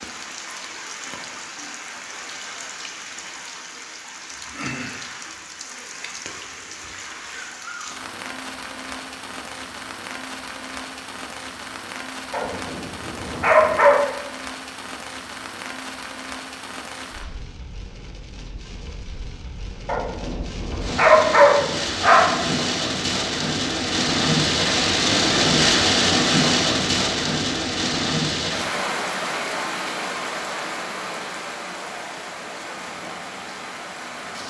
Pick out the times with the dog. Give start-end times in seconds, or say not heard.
12.3-14.0, 19.9-22.6.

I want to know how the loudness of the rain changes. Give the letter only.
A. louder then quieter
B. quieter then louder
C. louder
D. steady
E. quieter
A.